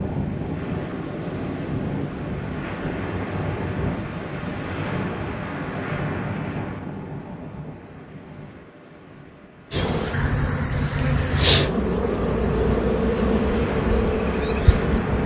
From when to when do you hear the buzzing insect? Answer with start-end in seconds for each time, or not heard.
9.7-15.2.